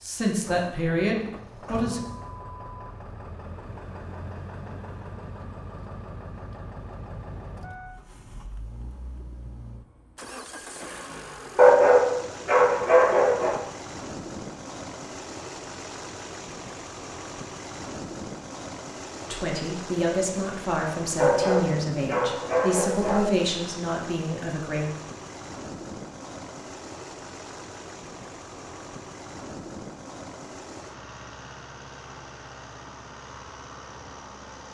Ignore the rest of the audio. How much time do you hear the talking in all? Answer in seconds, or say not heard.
8 s.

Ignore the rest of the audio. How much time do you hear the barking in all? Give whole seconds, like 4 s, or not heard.
4 s.